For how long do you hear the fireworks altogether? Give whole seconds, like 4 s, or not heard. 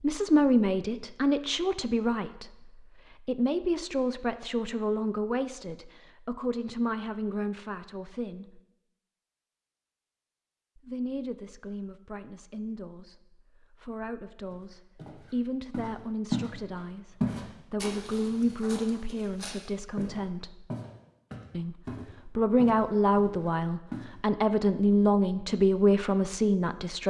not heard.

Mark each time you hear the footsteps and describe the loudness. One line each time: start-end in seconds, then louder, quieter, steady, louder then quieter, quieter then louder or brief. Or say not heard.
14.5-16.5 brief
17.2-24.1 steady.